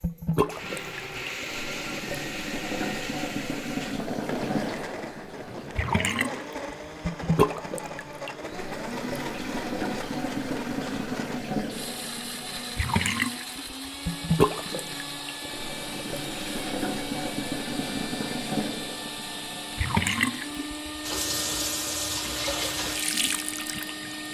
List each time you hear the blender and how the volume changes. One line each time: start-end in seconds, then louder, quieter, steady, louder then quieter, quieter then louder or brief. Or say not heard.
0.0-24.2 steady.